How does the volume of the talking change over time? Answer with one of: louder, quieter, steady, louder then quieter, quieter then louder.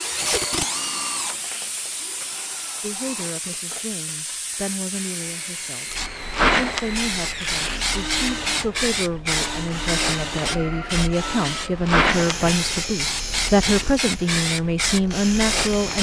louder.